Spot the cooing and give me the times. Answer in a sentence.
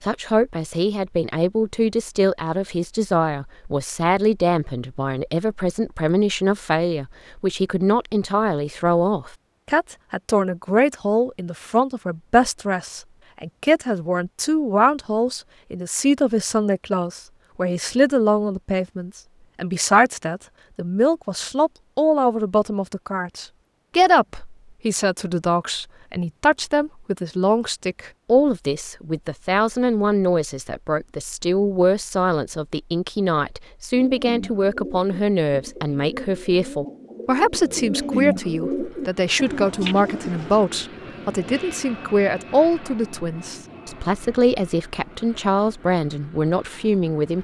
You can hear the cooing from 33.9 to 40.6 s.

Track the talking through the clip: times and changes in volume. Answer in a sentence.
The talking can be heard from 0.0 to 47.3 s, at a steady volume.